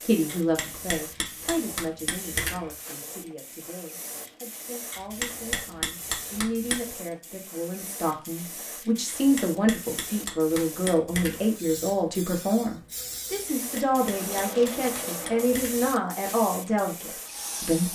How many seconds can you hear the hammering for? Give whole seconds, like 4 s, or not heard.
9 s.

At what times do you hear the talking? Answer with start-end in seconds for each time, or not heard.
0.0-17.8.